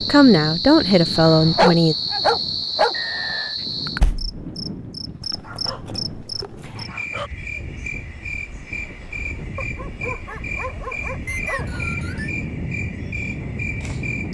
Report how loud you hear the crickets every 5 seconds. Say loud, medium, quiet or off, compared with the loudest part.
loud, medium, medium.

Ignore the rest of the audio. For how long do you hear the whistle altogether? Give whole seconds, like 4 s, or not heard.
2 s.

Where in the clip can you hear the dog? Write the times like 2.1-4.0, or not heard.
1.1-3.0, 5.4-7.3, 9.6-11.8.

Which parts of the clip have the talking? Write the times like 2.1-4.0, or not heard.
0.0-1.9.